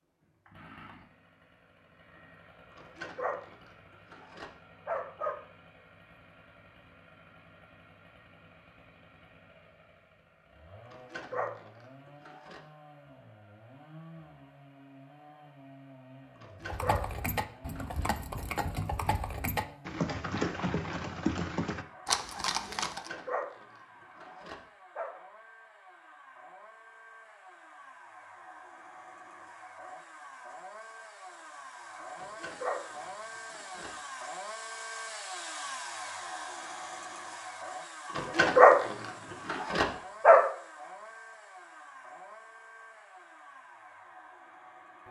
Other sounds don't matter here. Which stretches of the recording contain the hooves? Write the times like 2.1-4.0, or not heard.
16.6-23.1.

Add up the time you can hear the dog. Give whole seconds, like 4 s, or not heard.
12 s.